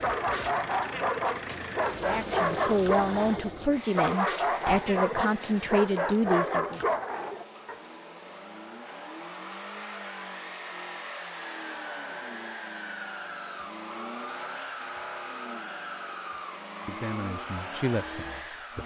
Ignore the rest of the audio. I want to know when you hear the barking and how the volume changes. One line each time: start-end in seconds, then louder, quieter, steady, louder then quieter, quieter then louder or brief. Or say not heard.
0.0-7.8 steady.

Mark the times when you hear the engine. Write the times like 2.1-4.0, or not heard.
0.0-18.8.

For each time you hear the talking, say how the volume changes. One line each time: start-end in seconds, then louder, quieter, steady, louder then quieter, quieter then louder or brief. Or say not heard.
1.9-7.0 steady
16.9-18.8 brief.